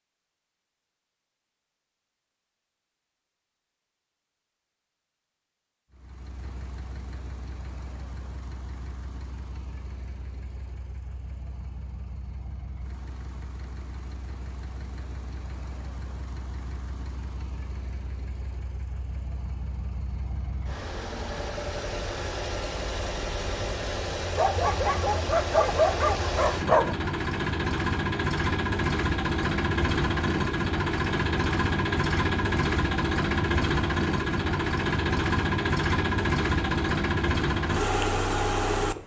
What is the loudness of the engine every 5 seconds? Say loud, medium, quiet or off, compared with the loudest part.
off, quiet, quiet, quiet, medium, loud, loud, loud.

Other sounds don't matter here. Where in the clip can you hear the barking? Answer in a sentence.
You can hear the barking from 24.4 to 26.9 s.